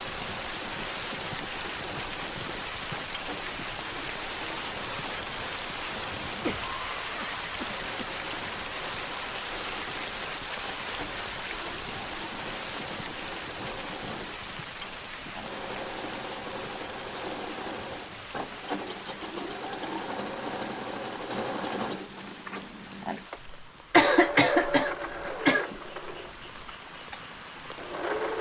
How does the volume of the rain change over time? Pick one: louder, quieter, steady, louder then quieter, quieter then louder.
quieter.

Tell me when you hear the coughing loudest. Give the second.
24 s.